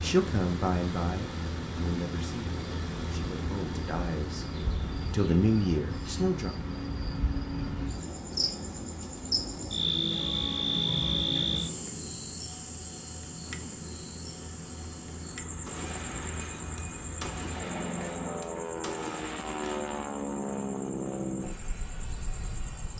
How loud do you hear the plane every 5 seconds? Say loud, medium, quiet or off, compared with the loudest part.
loud, medium, medium, loud, loud.